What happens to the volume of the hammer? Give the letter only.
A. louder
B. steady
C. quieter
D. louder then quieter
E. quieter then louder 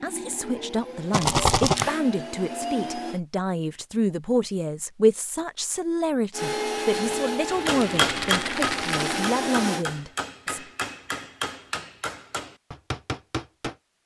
C.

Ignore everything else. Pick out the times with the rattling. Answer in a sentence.
You can hear the rattling from 1.1 to 1.9 s and from 8.0 to 9.3 s.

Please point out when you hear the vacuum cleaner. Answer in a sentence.
You can hear the vacuum cleaner from 0.0 to 3.2 s and from 6.3 to 9.8 s.